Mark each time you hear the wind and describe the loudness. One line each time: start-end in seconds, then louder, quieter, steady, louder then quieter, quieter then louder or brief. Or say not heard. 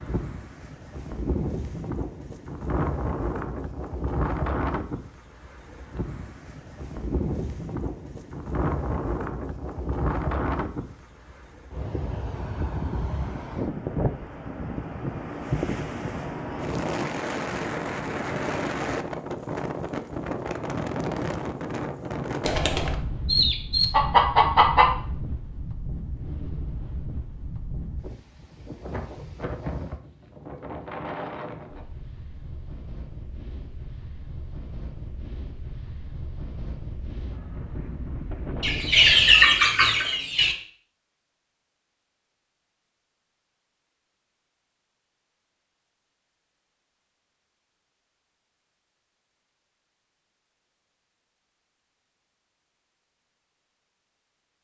0.0-39.4 quieter.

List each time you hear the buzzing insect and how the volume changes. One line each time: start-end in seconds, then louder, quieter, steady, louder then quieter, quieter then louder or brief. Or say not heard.
not heard.